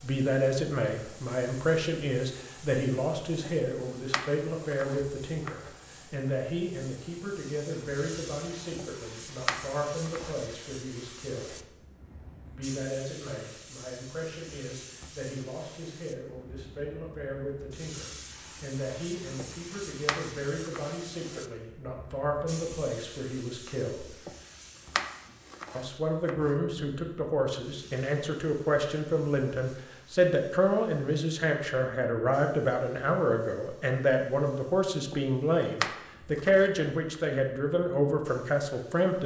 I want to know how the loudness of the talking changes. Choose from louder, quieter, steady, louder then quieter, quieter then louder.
quieter then louder.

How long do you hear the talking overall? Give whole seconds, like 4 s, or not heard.
37 s.